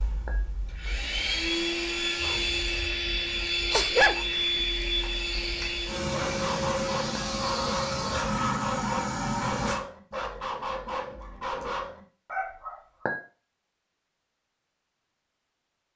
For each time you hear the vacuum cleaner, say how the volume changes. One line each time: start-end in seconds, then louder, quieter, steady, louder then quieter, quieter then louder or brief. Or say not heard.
0.0-9.8 steady.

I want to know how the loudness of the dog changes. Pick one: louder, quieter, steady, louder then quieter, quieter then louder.
louder.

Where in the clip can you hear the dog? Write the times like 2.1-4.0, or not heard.
2.1-13.1.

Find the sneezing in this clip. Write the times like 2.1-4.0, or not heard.
3.6-4.5.